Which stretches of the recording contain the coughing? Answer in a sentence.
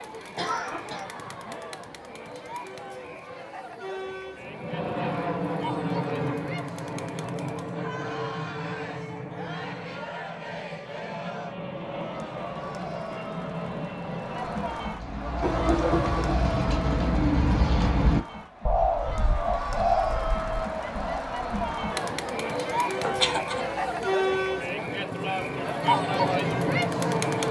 The coughing can be heard from 0.3 to 1.1 s, from 15.4 to 16.4 s and from 23.0 to 24.1 s.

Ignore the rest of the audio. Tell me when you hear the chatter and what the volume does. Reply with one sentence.
The chatter can be heard from 0.0 to 27.4 s, getting louder.